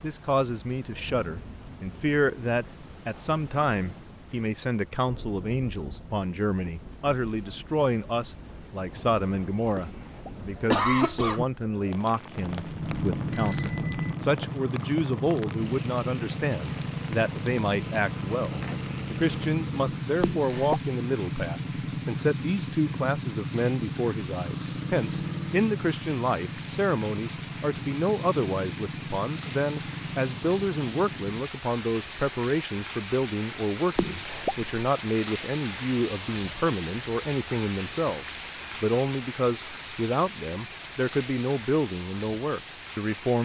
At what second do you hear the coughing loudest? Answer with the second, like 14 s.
11 s.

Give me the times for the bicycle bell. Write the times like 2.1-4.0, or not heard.
12.4-14.2.